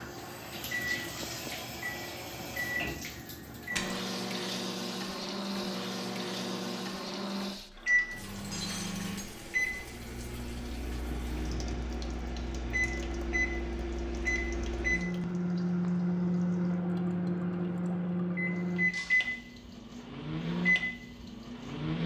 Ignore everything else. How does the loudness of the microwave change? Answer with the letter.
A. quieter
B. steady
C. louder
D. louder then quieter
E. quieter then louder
C.